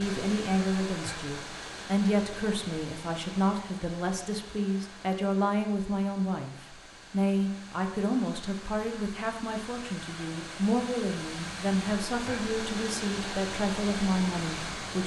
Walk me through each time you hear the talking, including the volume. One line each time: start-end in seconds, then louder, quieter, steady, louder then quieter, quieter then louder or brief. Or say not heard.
0.0-15.0 steady.